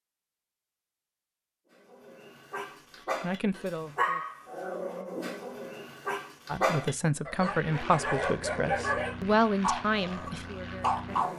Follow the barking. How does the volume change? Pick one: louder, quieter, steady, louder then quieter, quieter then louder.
louder.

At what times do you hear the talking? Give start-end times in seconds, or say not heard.
3.2-4.2, 6.5-11.1.